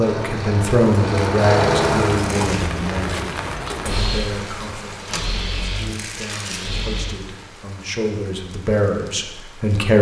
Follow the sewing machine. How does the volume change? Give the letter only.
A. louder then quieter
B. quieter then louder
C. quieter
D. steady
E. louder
C.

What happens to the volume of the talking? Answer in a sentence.
The volume of the talking goes down, then up.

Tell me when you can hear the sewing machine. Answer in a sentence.
You can hear the sewing machine from 0.0 to 7.2 s.